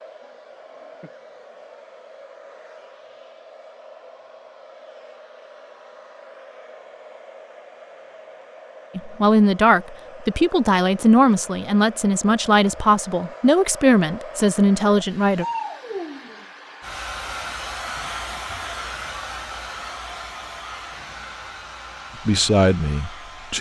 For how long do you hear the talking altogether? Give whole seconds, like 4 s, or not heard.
8 s.